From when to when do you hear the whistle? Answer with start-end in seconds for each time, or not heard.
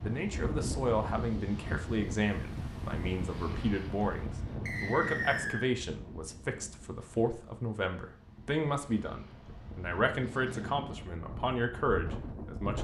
4.7-5.7.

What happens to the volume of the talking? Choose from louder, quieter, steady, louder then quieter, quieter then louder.
steady.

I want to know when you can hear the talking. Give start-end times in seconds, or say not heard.
0.0-12.8.